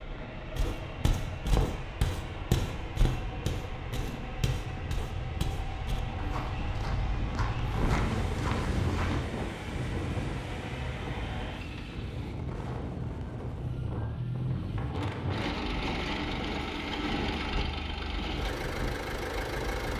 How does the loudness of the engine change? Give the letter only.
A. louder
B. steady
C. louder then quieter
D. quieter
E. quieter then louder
A.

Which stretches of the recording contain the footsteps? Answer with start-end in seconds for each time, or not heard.
0.6-9.2.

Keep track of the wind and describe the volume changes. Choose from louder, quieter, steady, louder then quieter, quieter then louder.
louder then quieter.